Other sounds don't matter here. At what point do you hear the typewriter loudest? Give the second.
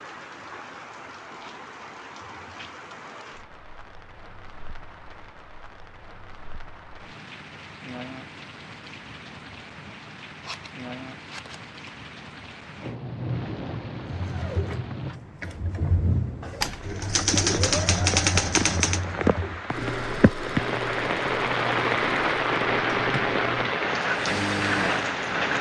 18 s.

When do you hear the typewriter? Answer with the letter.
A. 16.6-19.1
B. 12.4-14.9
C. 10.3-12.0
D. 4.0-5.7
A.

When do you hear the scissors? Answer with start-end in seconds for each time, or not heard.
10.3-12.0.